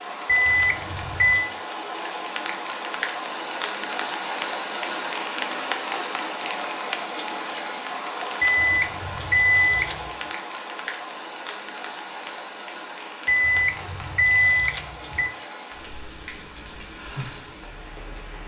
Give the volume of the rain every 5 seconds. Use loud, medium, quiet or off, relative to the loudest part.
loud, loud, medium, medium.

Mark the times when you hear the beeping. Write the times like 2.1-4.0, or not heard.
0.2-1.5, 8.4-10.1, 13.2-15.3.